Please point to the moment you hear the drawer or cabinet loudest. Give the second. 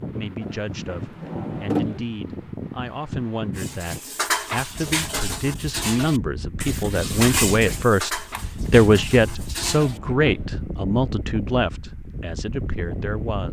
2 s.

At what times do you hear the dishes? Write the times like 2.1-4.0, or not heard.
3.5-9.9.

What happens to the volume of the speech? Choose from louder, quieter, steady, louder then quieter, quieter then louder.
louder then quieter.